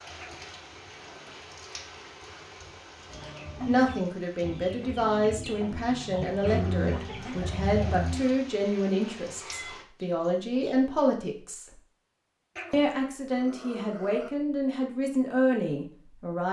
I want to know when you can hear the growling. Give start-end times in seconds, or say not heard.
0.1-1.4, 6.5-8.2, 12.6-14.3.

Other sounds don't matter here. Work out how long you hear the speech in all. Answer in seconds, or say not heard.
12 s.